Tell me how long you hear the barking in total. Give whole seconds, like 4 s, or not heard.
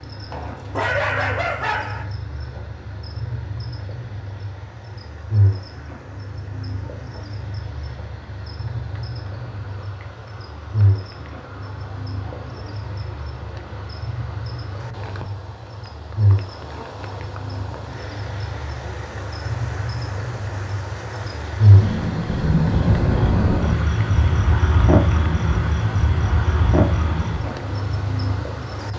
2 s.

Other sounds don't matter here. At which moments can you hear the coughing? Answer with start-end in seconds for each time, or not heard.
not heard.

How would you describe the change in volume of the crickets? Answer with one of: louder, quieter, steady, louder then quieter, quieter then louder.
louder.